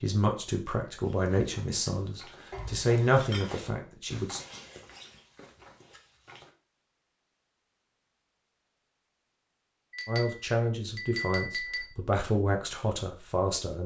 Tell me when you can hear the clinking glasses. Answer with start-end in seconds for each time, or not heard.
2.5-3.5, 9.9-11.8.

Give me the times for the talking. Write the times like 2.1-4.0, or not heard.
0.0-4.4, 10.1-13.8.